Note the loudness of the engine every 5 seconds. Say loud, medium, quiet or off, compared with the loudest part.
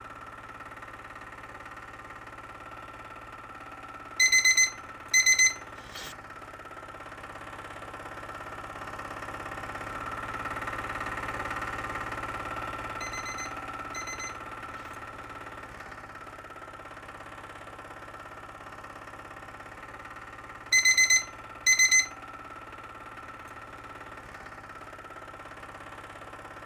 medium, medium, loud, medium, medium, medium.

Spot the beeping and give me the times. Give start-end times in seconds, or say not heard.
4.2-6.1, 13.0-14.9, 20.7-22.1.